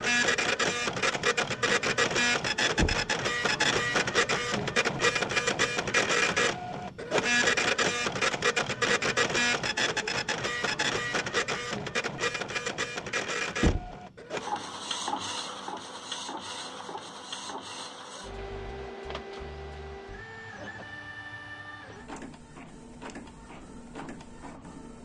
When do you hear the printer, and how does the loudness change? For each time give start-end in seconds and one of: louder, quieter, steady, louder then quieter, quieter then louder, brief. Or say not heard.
0.0-25.0 quieter.